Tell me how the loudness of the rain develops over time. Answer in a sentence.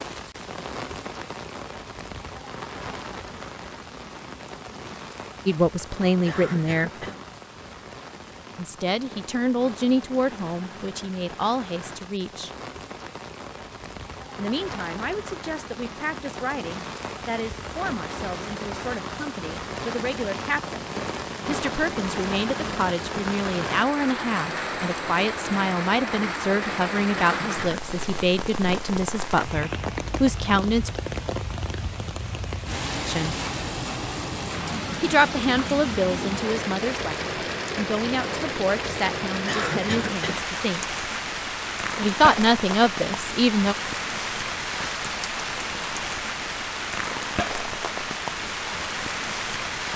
The volume of the rain goes up.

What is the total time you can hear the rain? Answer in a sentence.
You can hear the rain for 50 seconds altogether.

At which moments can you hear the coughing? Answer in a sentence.
You can hear the coughing from 6.2 to 7.2 s, from 27.2 to 27.9 s and from 39.5 to 40.5 s.